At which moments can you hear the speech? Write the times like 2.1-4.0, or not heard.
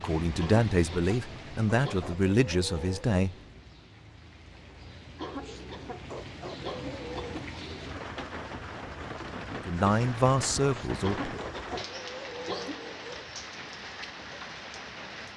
0.0-3.4, 9.7-11.3.